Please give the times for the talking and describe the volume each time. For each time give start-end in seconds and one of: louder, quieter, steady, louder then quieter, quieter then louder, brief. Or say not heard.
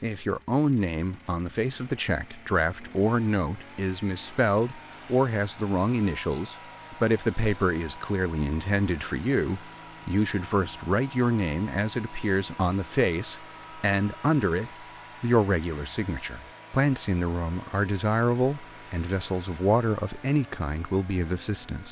0.0-21.8 steady.